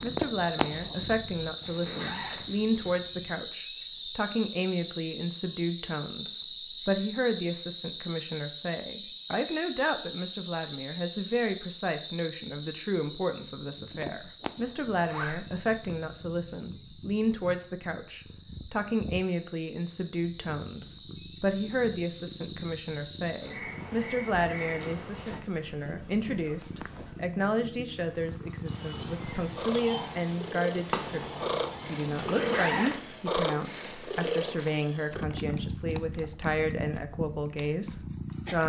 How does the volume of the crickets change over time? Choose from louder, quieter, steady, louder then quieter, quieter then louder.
quieter then louder.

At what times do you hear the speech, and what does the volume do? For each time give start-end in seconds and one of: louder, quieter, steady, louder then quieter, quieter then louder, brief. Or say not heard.
0.0-38.6 steady.